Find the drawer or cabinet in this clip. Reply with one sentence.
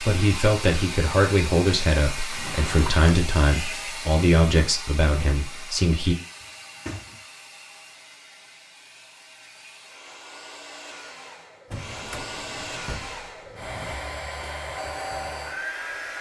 You can hear the drawer or cabinet from 2.3 to 3.1 s, from 6.4 to 7.2 s and from 11.7 to 14.0 s.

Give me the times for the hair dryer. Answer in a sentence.
You can hear the hair dryer from 0.0 to 16.1 s.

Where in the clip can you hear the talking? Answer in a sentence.
The talking can be heard from 0.0 to 6.2 s.